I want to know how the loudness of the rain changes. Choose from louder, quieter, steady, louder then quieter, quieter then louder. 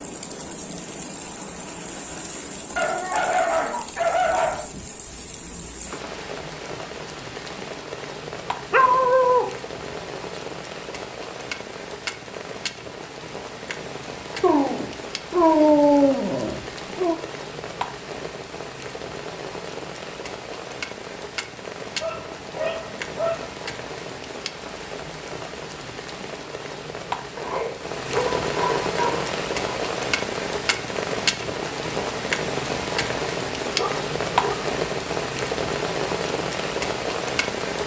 louder.